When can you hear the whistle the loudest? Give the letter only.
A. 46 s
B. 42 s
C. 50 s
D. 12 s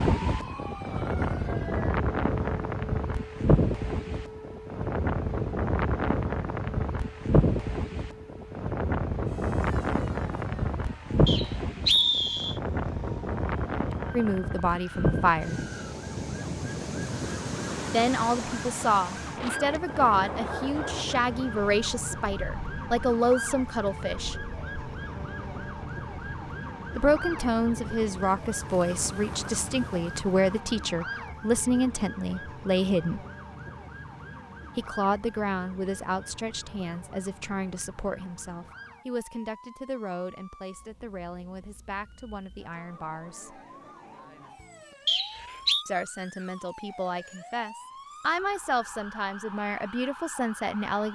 D.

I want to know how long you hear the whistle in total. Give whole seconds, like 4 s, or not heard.
2 s.